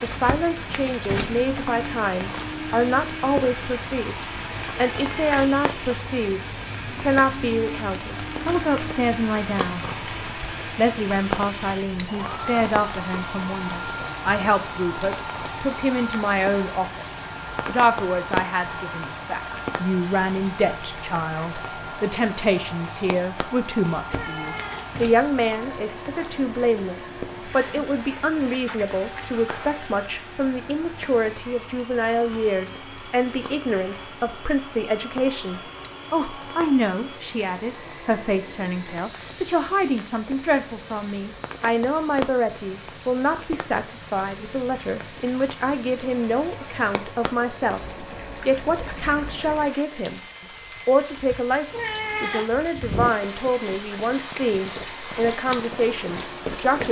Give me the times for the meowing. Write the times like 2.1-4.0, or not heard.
4.7-5.4, 24.1-24.9, 51.7-52.5.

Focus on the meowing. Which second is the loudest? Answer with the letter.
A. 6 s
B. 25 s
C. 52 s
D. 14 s
C.